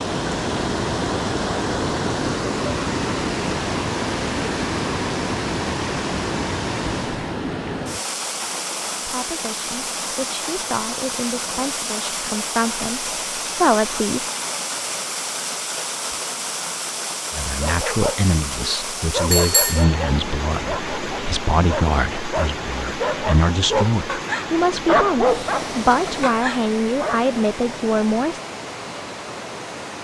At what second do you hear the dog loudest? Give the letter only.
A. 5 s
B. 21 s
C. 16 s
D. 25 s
D.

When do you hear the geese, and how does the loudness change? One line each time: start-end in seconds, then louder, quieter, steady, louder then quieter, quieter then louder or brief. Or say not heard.
not heard.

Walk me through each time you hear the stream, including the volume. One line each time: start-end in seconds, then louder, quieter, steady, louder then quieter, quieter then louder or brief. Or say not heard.
0.0-30.0 quieter.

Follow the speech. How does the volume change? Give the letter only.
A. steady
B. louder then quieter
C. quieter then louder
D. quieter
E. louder
E.